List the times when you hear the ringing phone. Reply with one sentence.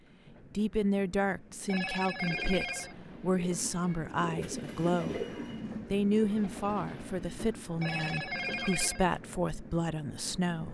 The ringing phone can be heard from 1.6 to 3.0 s and from 7.8 to 9.1 s.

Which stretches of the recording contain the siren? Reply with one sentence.
The siren can't be heard in this clip.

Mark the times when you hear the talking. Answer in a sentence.
The talking can be heard from 0.5 to 5.2 s and from 5.9 to 10.7 s.